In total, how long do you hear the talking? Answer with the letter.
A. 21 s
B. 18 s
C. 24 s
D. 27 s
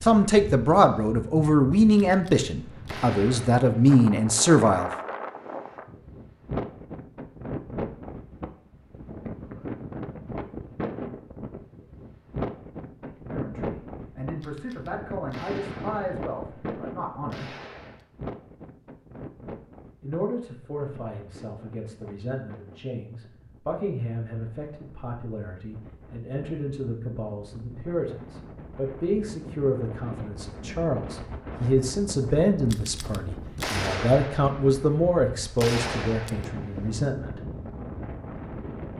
D.